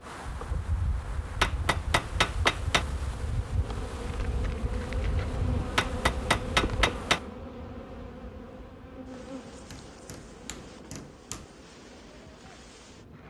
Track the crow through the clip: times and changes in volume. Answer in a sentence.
You can't hear the crow here.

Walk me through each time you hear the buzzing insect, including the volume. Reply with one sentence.
You can hear the buzzing insect from 0.0 to 13.2 s, getting louder then quieter.